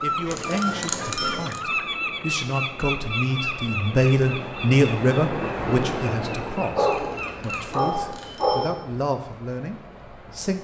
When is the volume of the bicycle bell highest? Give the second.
1 s.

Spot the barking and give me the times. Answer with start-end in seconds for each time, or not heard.
6.8-8.8.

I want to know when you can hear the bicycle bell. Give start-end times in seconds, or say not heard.
0.3-1.6, 6.9-8.8.